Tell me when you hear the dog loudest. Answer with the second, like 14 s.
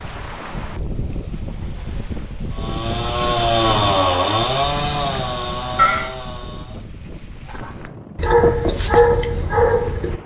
9 s.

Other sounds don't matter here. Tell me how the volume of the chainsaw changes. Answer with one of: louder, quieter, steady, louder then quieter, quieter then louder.
quieter.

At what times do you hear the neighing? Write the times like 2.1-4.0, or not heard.
5.0-6.1.